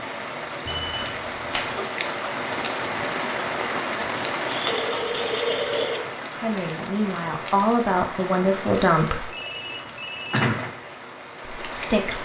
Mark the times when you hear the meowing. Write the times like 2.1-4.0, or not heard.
not heard.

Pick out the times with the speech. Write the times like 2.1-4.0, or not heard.
6.4-9.3, 11.6-12.2.